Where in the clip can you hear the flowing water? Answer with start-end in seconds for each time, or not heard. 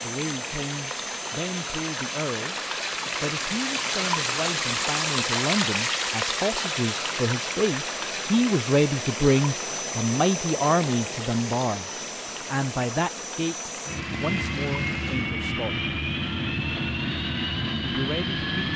0.0-15.3.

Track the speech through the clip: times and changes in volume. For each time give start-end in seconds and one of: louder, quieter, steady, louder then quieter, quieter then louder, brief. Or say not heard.
0.0-2.5 brief
3.2-15.8 louder then quieter
17.9-18.7 brief.